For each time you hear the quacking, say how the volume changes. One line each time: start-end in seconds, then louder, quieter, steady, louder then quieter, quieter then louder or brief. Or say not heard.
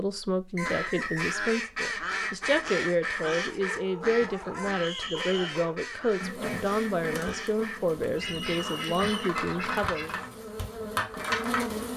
0.6-10.2 quieter.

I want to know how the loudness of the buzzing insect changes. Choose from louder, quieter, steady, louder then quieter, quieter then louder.
louder.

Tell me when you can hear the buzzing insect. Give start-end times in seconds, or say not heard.
6.2-11.9.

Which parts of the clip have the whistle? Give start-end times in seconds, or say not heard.
0.6-1.6, 4.8-5.5, 8.2-9.3.